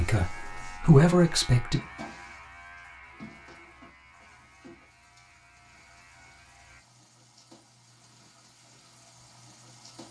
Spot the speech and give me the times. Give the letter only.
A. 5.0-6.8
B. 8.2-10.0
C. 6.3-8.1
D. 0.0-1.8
D.